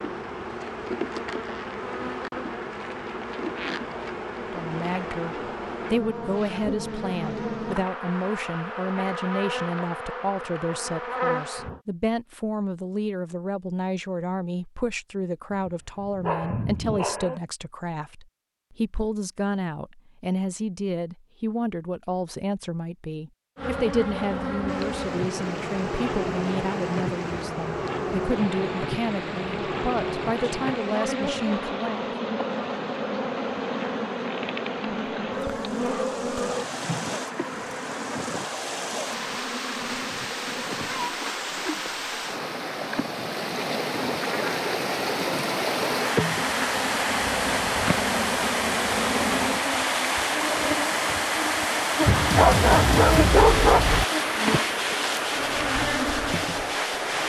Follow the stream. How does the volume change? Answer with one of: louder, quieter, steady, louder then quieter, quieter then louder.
louder.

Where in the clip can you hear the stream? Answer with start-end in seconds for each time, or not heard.
24.6-57.2.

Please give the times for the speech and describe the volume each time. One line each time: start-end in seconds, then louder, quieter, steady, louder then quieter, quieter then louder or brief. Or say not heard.
4.3-32.0 steady.